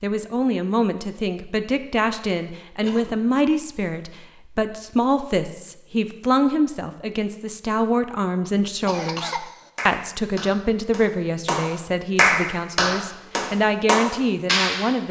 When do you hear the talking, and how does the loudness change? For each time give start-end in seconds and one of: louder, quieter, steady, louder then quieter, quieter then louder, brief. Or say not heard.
0.0-15.0 steady.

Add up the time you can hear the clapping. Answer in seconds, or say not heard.
5 s.